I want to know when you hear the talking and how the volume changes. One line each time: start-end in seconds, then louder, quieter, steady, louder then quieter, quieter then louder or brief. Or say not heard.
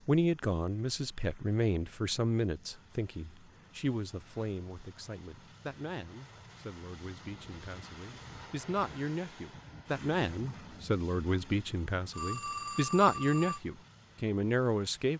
0.1-15.1 quieter then louder.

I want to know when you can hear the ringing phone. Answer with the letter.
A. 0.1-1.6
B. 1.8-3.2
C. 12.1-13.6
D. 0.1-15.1
C.